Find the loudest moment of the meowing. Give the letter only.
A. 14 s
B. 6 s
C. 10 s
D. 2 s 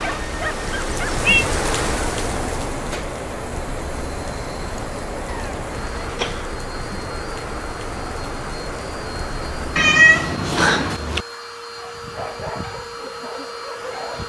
C.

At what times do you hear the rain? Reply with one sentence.
You can hear the rain from 0.0 to 9.8 s.